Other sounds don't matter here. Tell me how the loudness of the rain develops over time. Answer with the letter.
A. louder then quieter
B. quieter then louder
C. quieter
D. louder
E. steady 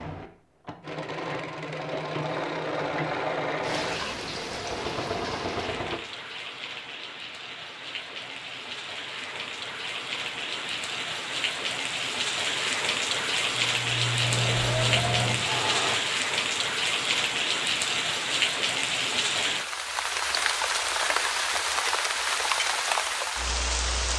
D.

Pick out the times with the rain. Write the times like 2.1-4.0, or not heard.
3.6-24.1.